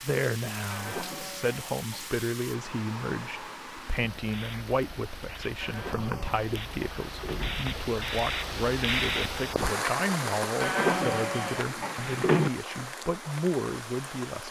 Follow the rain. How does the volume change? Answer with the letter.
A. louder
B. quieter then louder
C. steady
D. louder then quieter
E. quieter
D.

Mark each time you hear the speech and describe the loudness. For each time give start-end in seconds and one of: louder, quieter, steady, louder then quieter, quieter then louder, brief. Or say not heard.
0.0-14.4 steady.